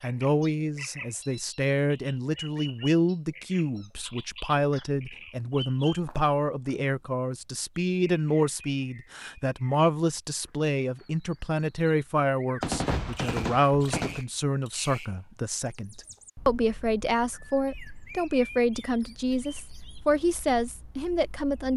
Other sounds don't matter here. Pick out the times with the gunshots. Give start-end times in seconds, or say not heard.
12.6-14.2.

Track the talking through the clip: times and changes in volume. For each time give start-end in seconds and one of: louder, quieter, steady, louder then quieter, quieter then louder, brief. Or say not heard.
0.0-21.7 steady.